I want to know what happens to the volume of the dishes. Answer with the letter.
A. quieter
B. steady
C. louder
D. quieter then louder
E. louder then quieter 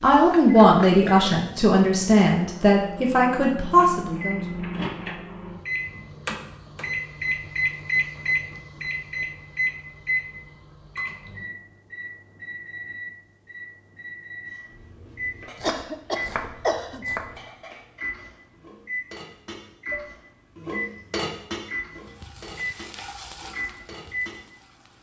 E.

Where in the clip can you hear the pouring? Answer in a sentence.
You can't hear the pouring here.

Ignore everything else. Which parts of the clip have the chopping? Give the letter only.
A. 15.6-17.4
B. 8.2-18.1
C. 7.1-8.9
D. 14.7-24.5
A.